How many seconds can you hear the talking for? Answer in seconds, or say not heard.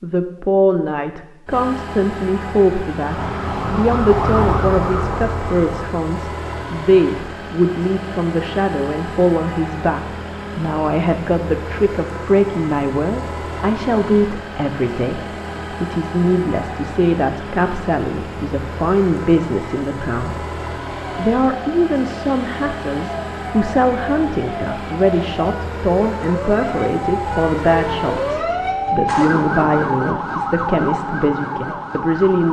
32 s.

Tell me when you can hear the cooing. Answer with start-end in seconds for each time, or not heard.
not heard.